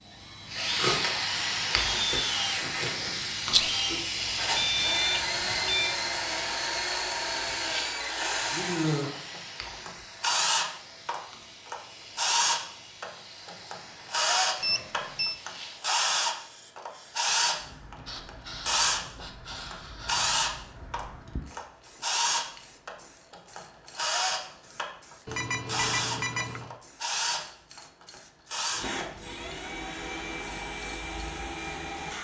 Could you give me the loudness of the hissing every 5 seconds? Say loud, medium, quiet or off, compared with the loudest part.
loud, medium, quiet, quiet, quiet, quiet, off.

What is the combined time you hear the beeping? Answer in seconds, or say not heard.
4 s.